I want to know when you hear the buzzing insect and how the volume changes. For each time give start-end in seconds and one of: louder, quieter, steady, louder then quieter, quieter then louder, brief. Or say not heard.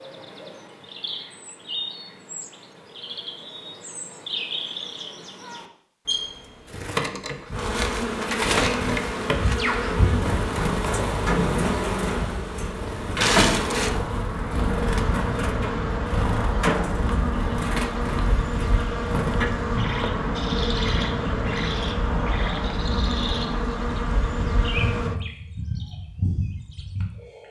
7.5-25.1 steady.